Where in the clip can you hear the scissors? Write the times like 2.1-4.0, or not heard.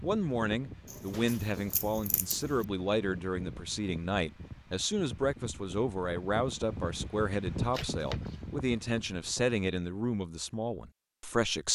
0.9-2.6, 7.7-8.4.